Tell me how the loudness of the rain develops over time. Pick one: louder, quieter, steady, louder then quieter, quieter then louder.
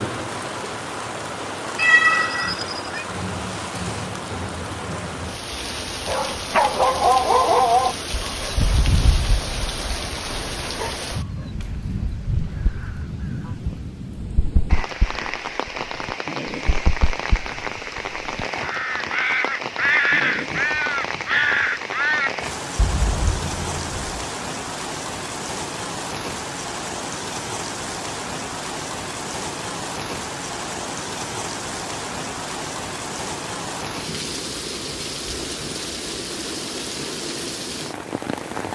steady.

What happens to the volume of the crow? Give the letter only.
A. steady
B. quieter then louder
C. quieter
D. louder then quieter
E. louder
D.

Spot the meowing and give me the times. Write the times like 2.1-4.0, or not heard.
1.8-3.0.